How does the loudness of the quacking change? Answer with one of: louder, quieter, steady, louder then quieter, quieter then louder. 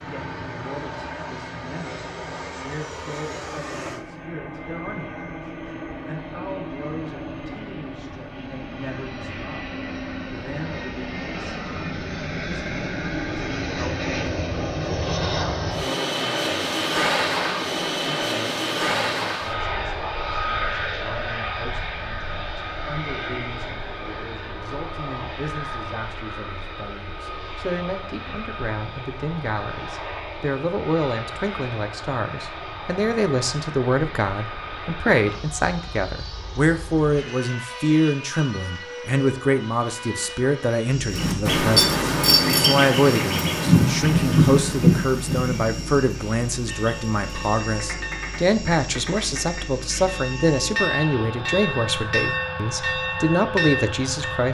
quieter.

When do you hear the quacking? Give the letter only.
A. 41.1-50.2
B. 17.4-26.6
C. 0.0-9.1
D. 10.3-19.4
A.